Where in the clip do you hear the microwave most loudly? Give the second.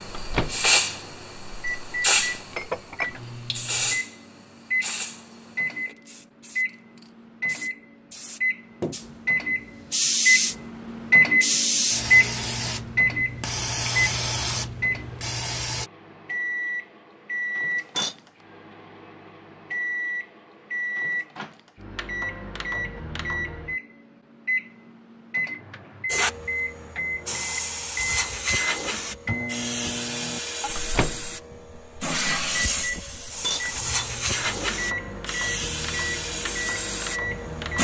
12 s.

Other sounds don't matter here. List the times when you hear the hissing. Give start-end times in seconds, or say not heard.
0.0-15.9, 26.1-37.7.